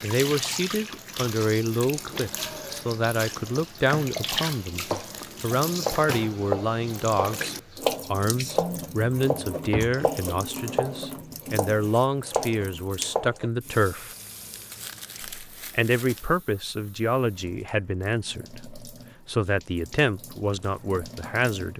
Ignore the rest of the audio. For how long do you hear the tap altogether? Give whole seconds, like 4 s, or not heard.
22 s.